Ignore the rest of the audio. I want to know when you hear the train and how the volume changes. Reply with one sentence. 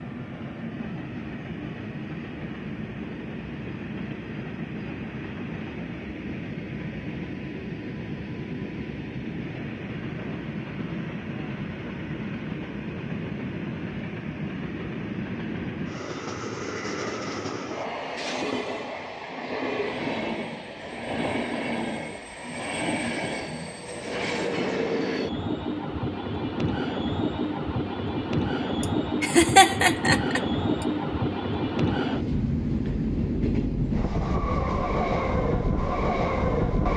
You can hear the train from 0.0 to 36.9 s, getting louder.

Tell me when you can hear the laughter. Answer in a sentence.
The laughter can be heard from 28.8 to 30.9 s.